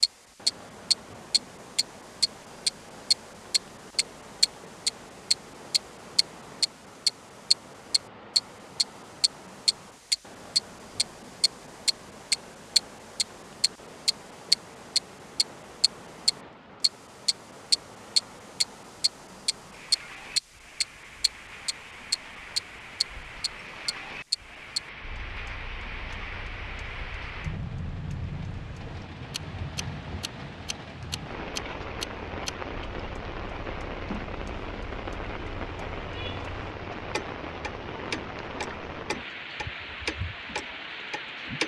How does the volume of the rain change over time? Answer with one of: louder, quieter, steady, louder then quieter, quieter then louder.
louder.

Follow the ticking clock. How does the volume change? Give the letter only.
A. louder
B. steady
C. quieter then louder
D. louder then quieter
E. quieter
C.